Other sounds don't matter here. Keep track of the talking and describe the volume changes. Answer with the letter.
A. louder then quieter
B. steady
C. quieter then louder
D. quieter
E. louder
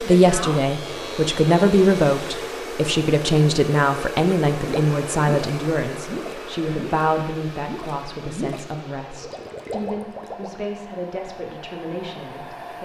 D.